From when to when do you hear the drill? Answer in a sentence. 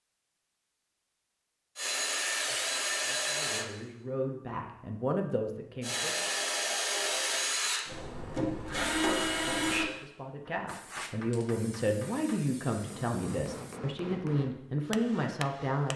The drill can be heard from 1.8 to 3.6 s and from 5.8 to 9.8 s.